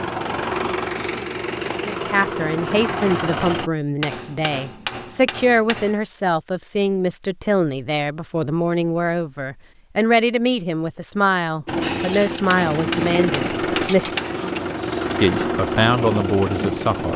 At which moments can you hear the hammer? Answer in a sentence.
You can hear the hammer from 4.0 to 6.0 s and from 12.4 to 14.4 s.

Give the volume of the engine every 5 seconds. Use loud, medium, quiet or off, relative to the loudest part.
loud, off, loud, loud.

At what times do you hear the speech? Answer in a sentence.
You can hear the speech from 1.9 to 14.1 s and from 15.2 to 17.1 s.